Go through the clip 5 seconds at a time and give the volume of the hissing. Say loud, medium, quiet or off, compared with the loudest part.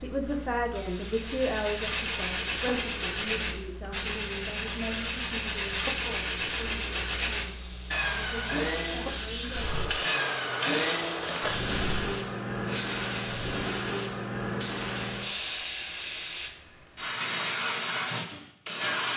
medium, medium, loud, loud.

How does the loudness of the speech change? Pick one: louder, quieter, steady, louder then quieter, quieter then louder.
quieter.